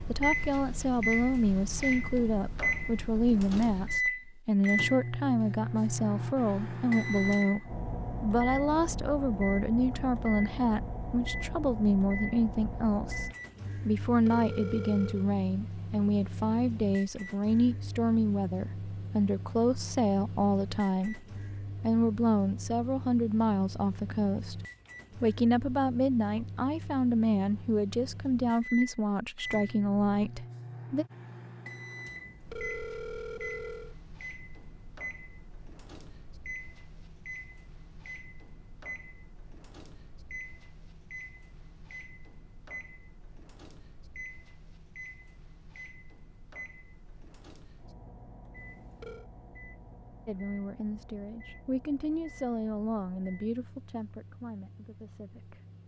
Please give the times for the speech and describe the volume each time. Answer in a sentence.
You can hear the speech from 0.1 to 31.1 s, at a steady volume; and from 50.2 to 55.6 s, getting louder then quieter.